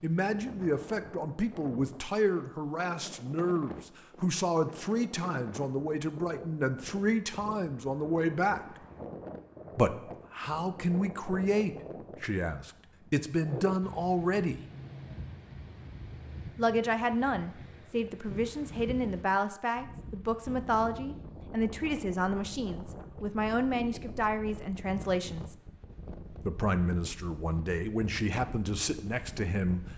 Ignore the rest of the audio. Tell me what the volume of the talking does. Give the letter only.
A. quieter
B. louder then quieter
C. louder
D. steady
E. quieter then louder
D.